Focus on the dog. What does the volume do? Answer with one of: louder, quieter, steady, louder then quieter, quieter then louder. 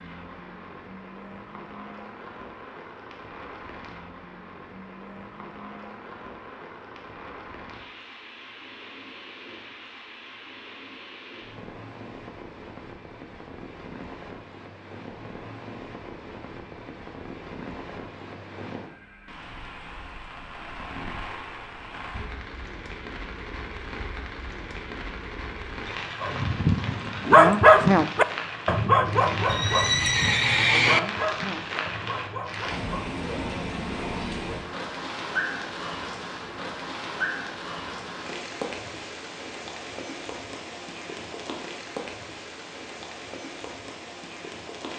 quieter.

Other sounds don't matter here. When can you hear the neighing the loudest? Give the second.
31 s.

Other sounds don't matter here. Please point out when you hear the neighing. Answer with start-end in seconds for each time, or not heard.
29.4-31.0.